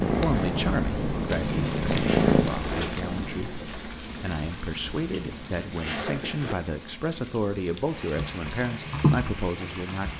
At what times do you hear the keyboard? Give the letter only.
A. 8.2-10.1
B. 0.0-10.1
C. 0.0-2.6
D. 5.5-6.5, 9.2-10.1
A.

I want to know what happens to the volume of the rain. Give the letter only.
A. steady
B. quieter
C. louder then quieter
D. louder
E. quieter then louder
B.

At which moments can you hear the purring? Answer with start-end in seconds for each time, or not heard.
0.0-2.6.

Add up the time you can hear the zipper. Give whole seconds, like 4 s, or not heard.
2 s.